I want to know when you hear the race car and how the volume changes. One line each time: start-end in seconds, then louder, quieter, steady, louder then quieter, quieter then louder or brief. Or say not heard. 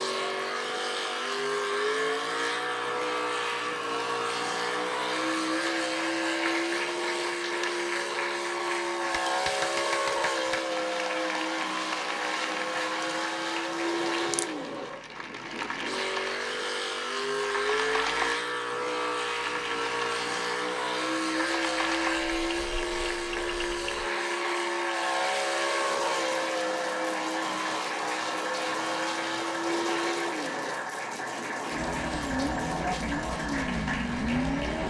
0.0-34.8 steady.